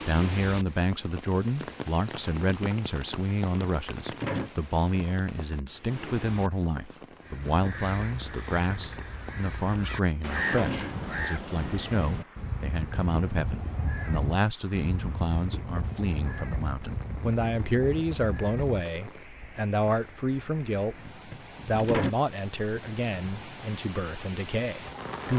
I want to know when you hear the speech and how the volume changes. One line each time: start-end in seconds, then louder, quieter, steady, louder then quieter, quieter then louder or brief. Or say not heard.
0.1-25.3 steady.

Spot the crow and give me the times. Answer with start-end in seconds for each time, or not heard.
7.2-18.8.